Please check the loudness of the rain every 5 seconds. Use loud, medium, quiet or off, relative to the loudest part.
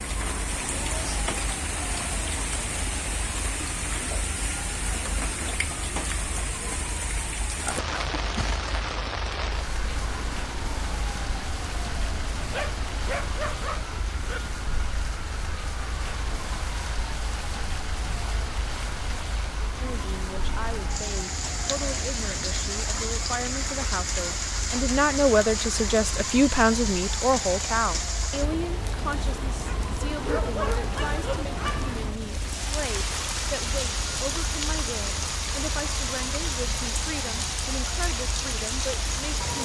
loud, loud, medium, medium, loud, loud, loud, loud.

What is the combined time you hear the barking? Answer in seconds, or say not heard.
4 s.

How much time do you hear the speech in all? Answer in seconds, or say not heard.
20 s.